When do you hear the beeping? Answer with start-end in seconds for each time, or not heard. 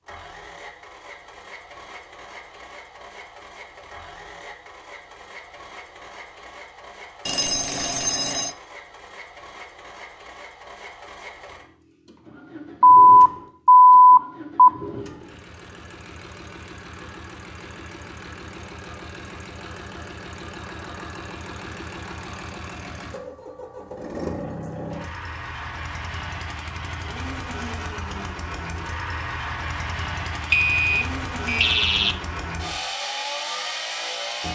7.2-8.5, 12.8-14.7, 30.5-32.1.